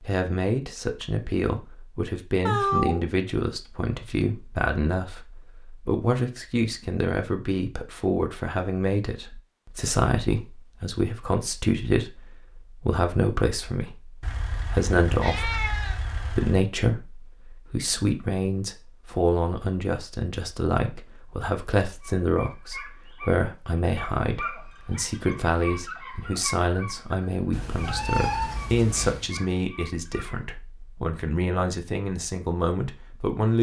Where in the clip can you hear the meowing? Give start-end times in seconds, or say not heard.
2.5-3.0, 14.2-16.6, 27.5-29.3.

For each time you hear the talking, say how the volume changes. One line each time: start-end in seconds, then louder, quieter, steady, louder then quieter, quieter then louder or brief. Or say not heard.
0.0-33.5 steady.